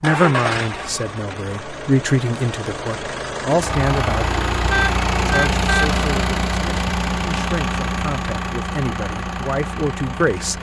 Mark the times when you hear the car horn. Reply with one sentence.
The car horn can be heard from 4.7 to 5.8 s.